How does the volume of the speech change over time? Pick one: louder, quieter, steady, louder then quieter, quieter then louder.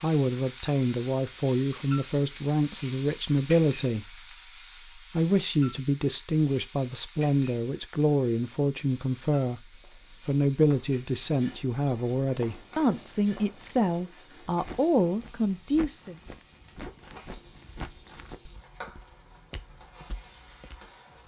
steady.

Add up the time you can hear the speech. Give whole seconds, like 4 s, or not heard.
15 s.